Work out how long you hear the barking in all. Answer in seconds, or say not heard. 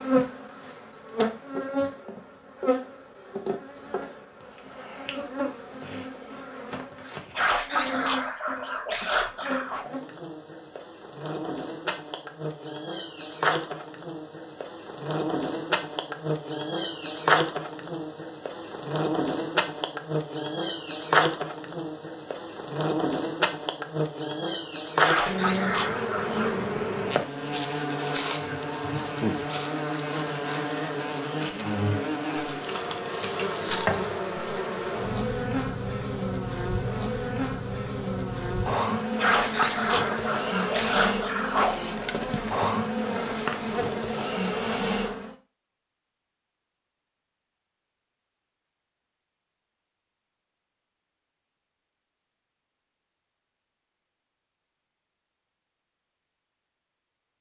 7 s.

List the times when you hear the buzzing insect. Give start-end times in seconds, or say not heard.
0.0-45.4.